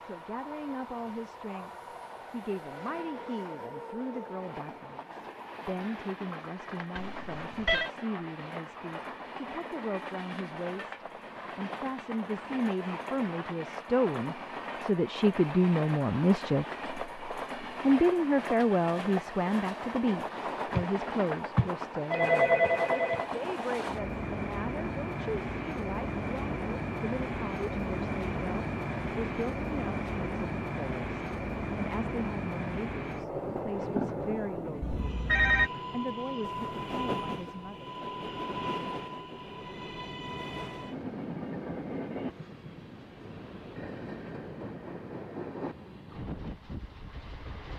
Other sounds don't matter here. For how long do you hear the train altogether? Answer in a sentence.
You can hear the train for 48 seconds altogether.